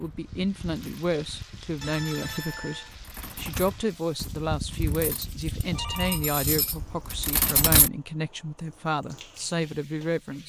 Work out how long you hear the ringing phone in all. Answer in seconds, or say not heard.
2 s.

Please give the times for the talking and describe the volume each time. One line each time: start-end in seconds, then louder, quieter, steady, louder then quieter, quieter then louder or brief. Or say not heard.
0.0-10.4 steady.